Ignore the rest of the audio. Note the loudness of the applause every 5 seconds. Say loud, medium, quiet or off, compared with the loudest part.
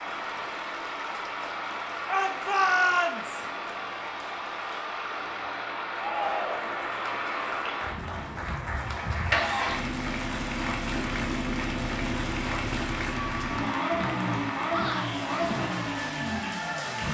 medium, loud, loud, loud.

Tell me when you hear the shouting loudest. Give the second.
3 s.